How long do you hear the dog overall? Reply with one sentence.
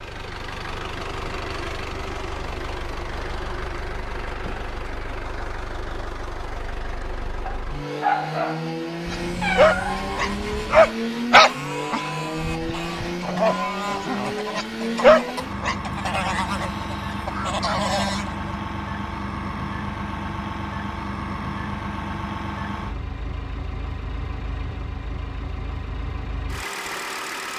You can hear the dog for 8 seconds altogether.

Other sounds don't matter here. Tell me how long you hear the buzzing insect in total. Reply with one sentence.
The buzzing insect can't be heard in this clip.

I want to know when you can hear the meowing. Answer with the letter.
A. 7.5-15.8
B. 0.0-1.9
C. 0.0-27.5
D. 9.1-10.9
D.